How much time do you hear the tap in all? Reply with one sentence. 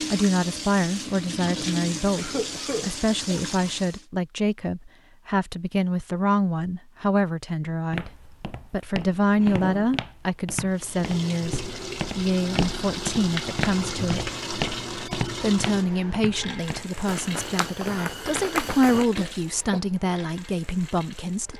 You can hear the tap for 15 seconds altogether.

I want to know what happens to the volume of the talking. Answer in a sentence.
The loudness of the talking stays about the same.